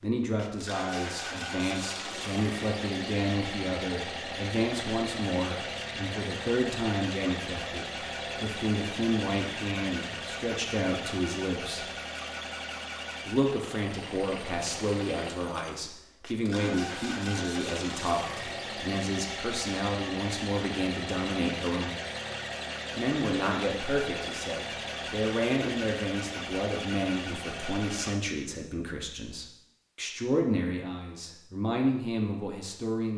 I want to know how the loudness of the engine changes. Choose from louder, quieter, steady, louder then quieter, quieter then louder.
steady.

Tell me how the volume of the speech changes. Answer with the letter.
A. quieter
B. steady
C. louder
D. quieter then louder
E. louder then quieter
B.